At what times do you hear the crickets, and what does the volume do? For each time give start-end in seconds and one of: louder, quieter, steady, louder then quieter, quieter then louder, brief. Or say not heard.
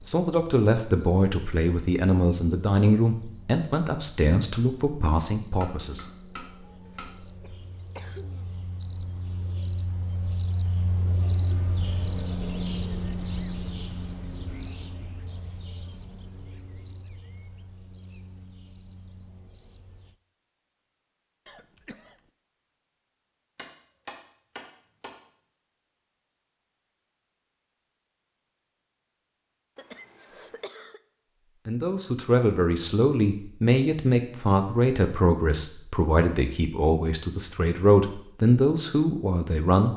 0.0-20.1 louder then quieter.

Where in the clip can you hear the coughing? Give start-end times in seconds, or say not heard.
7.4-8.4, 21.4-22.3, 29.8-31.0.